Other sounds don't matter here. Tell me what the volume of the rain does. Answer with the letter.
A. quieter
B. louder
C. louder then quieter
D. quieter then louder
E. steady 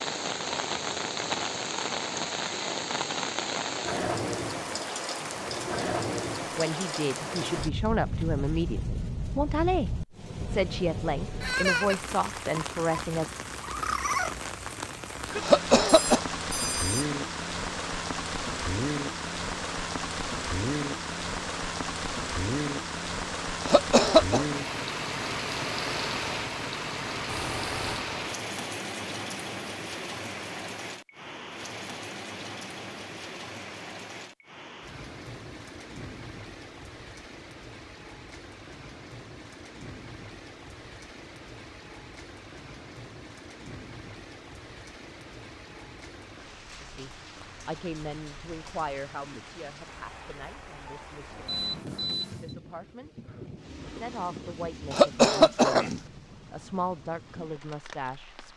A.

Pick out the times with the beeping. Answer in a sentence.
The beeping can be heard from 15.8 to 17.1 s, from 27.2 to 28.1 s and from 51.5 to 52.5 s.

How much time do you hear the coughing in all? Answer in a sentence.
The coughing can be heard for 3 seconds in total.